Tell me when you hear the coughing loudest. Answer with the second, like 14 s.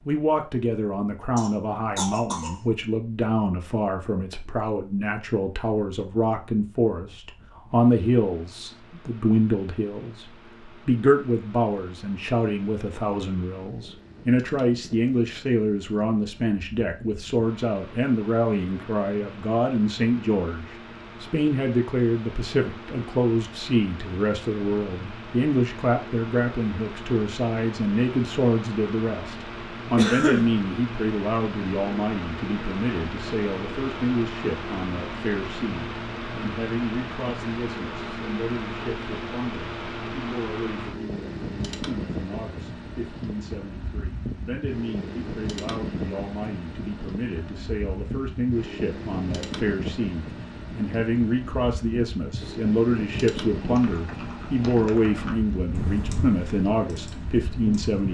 30 s.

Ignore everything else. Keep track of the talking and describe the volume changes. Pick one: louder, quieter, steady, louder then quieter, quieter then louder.
quieter then louder.